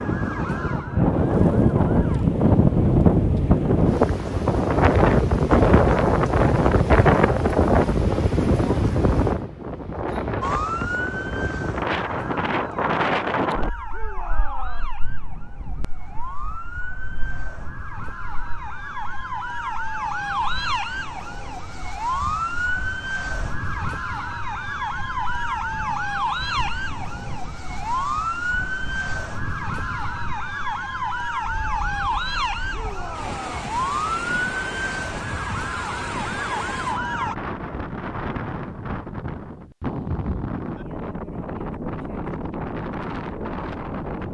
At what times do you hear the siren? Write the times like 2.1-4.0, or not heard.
0.0-2.2, 10.4-37.4.